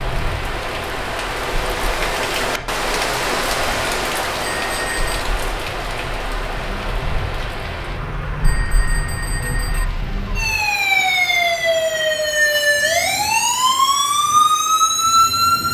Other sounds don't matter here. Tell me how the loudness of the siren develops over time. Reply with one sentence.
The volume of the siren goes up.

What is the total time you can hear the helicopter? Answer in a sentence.
The helicopter can't be heard in this clip.